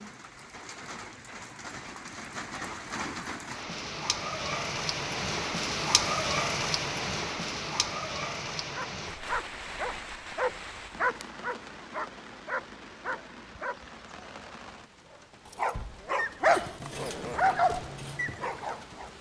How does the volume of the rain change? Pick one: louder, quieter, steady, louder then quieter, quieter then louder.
louder then quieter.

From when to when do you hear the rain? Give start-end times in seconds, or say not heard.
0.0-19.1.